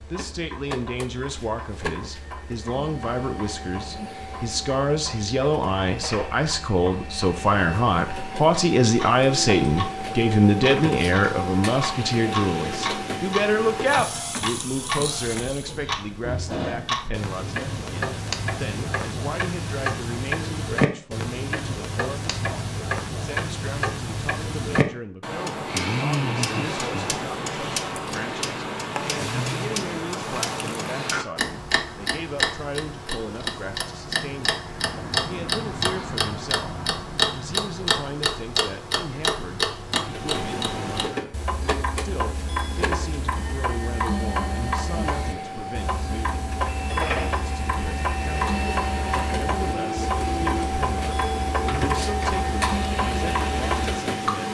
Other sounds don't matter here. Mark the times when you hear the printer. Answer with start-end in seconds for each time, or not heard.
0.0-15.8, 40.0-54.4.